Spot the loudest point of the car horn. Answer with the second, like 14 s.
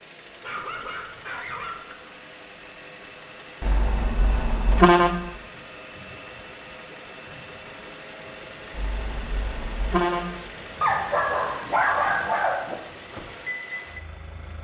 5 s.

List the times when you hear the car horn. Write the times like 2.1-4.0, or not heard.
3.6-5.2, 8.7-10.5.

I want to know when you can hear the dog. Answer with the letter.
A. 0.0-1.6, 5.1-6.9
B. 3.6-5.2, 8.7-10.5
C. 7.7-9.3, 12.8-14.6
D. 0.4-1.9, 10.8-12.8
D.